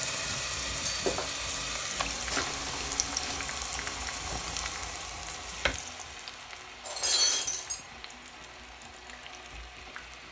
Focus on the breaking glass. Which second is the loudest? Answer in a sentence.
The volume of the breaking glass peaks at 7 seconds.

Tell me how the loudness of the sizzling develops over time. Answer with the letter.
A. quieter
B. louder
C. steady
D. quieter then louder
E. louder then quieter
A.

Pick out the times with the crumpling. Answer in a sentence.
You can hear the crumpling from 2.3 to 3.5 s.